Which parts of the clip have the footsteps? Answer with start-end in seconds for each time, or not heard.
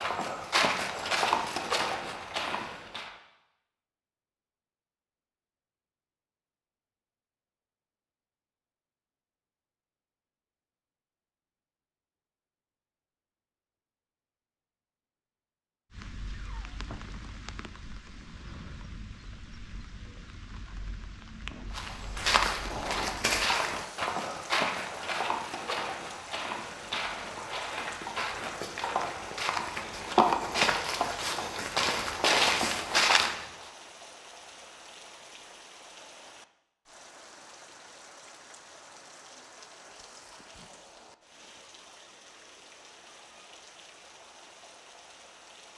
0.0-3.1, 21.8-33.4.